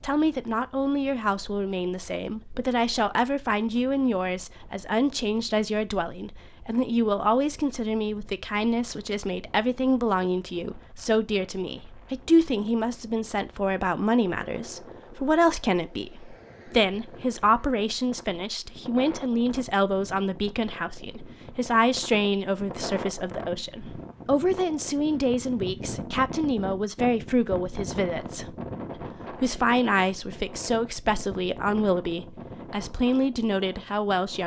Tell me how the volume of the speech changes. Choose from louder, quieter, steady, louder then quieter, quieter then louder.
steady.